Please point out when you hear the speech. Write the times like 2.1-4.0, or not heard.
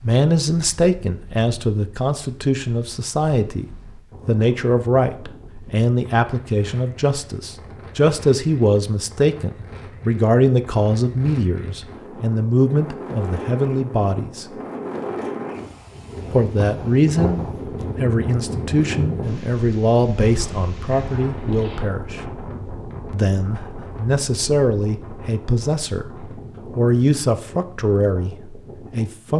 0.0-3.6, 4.2-14.4, 16.3-22.2, 23.1-29.3.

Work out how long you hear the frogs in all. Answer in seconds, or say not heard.
not heard.